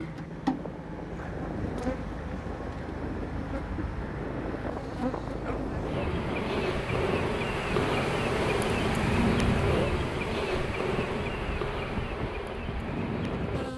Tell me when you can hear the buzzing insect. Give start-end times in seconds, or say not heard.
0.0-13.7.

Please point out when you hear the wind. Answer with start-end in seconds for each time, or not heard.
0.0-13.7.